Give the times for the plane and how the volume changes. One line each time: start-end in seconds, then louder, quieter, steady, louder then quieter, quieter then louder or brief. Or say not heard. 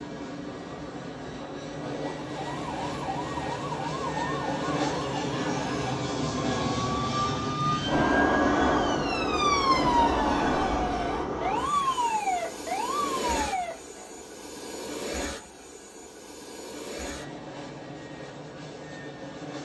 0.0-19.6 louder then quieter.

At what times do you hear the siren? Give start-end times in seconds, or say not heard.
2.2-14.2.